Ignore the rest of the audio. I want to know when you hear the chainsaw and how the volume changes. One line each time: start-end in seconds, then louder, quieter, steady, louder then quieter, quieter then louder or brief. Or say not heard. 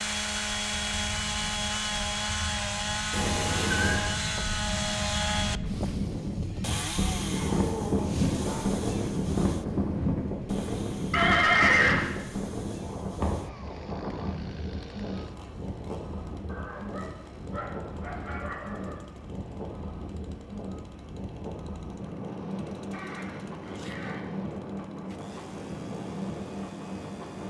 0.0-27.4 quieter.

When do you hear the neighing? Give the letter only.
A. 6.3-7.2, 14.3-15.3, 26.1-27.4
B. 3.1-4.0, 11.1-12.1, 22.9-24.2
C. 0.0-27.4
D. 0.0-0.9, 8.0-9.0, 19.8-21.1
B.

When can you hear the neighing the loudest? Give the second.
12 s.